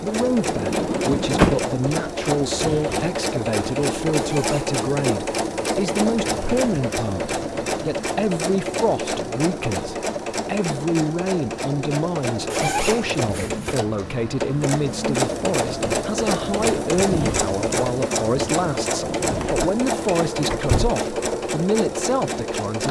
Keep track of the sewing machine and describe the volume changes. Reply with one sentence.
The volume of the sewing machine stays about the same.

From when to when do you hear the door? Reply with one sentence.
The door can be heard from 0.5 to 1.6 s and from 19.4 to 20.9 s.